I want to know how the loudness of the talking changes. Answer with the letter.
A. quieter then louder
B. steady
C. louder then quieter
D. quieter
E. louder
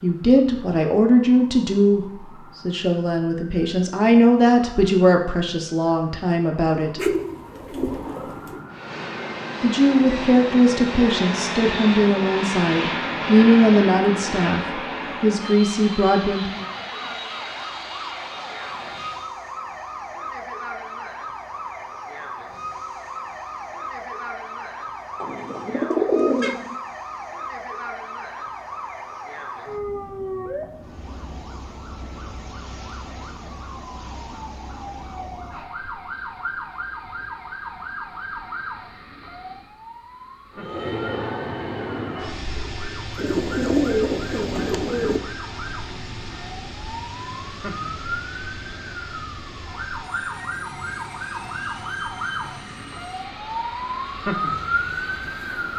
B.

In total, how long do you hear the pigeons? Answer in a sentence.
You can hear the pigeons for 5 seconds altogether.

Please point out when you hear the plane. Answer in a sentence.
The plane can be heard from 8.7 to 19.4 s and from 40.5 to 55.7 s.